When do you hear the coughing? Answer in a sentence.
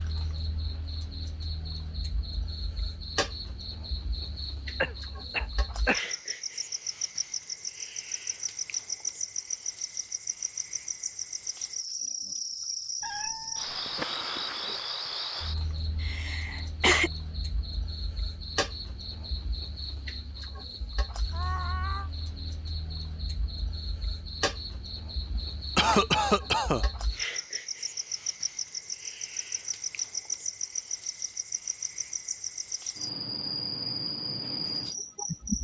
The coughing can be heard from 4.8 to 6.0 s, from 16.0 to 17.1 s and from 25.4 to 26.9 s.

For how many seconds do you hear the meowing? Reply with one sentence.
The meowing can be heard for 2 seconds in total.